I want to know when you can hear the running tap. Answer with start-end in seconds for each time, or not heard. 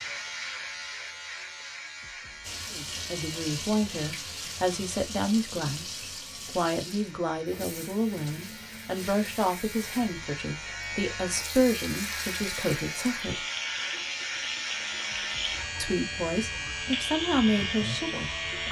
2.4-18.6.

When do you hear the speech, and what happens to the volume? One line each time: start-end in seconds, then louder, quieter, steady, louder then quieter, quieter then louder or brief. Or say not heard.
2.7-13.4 steady
15.8-18.6 brief.